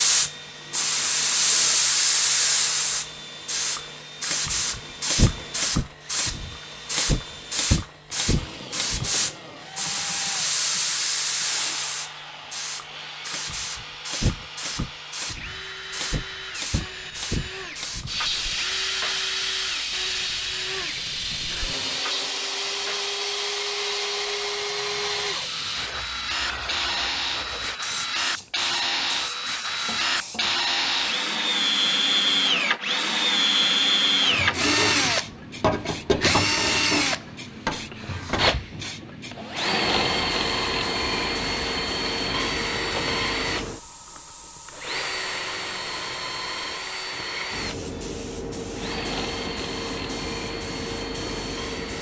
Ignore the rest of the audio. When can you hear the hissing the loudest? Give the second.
2 s.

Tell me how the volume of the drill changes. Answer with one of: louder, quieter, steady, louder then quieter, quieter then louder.
louder then quieter.